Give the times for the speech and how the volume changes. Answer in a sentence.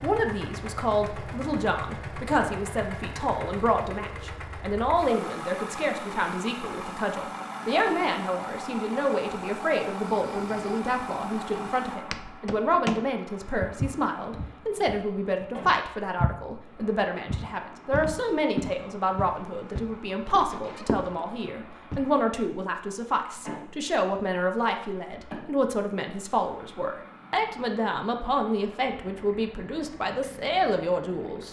You can hear the speech from 0.0 to 31.4 s, at a steady volume.